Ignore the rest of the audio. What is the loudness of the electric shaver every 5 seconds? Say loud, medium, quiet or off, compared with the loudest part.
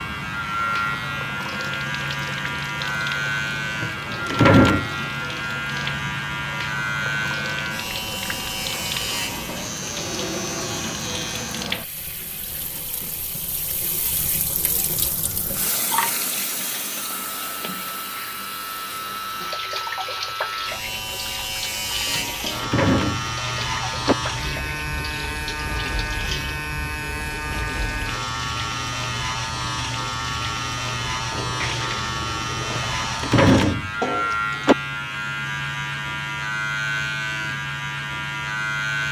loud, loud, medium, medium, loud, loud, loud, loud.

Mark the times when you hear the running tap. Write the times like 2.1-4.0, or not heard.
0.0-34.5.